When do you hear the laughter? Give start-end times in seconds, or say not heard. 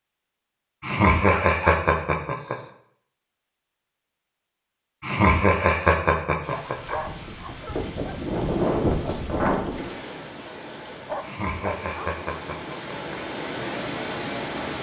0.8-2.5, 5.0-7.0, 11.2-13.2.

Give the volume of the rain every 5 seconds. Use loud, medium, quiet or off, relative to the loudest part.
off, loud, medium.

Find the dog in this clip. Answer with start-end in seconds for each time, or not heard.
0.9-2.7, 6.5-8.2, 10.9-12.1.